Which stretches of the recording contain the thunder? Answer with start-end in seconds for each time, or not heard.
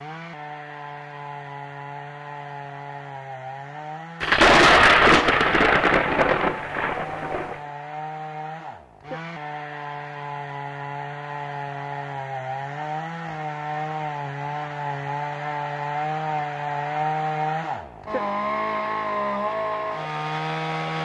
4.2-7.6.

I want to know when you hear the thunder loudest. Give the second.
5 s.